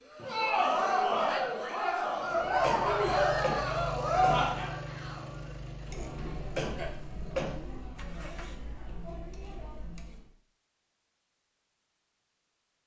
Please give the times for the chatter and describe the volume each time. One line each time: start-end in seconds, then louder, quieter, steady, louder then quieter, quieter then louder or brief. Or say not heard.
0.1-10.3 quieter.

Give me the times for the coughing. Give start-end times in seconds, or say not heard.
2.6-4.4, 6.5-7.5.